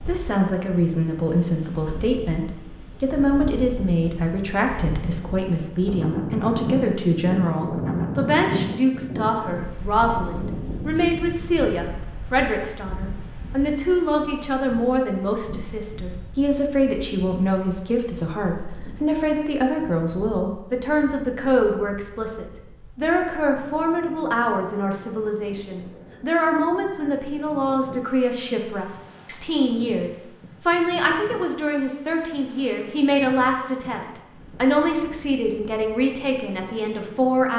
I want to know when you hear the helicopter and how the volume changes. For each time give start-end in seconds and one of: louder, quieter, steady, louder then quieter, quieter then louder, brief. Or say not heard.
not heard.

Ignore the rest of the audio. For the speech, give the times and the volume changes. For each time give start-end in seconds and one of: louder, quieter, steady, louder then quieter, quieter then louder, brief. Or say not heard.
0.1-37.5 steady.